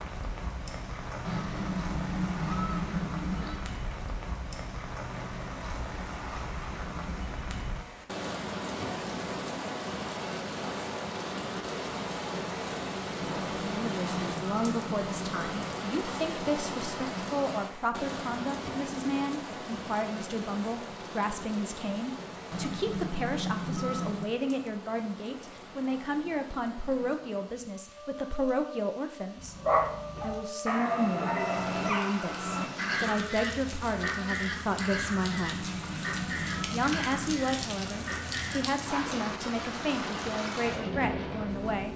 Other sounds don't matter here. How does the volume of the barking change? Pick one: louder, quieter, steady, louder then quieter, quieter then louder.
quieter.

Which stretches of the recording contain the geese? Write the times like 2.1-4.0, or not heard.
1.2-3.7, 13.2-15.8, 22.5-24.4, 35.2-37.5.